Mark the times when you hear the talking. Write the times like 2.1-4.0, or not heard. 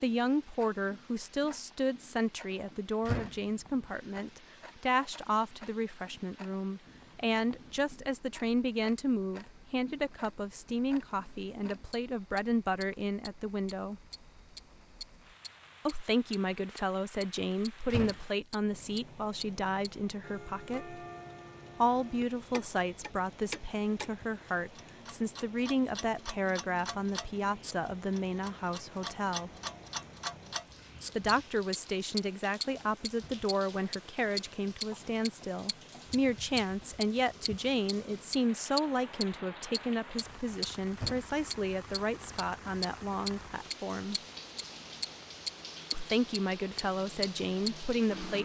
0.0-14.0, 15.8-21.0, 21.8-29.5, 31.1-44.2, 45.9-48.4.